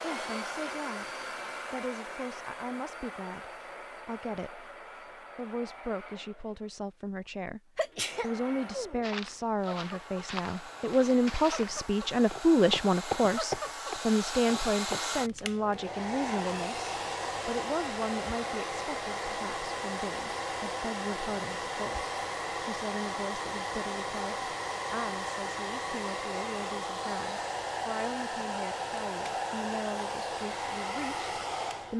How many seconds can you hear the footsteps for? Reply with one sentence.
You can hear the footsteps for 6 seconds altogether.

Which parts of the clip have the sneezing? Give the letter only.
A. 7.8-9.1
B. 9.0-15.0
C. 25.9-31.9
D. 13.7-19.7
A.